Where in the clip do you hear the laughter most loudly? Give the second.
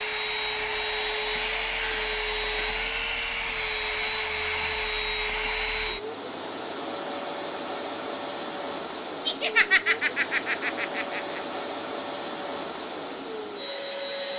10 s.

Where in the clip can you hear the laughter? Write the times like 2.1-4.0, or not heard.
9.2-11.4.